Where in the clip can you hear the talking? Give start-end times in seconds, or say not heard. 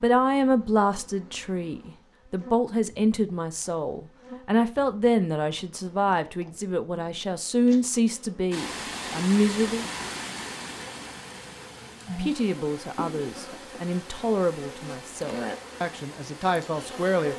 0.0-9.8, 12.2-17.3.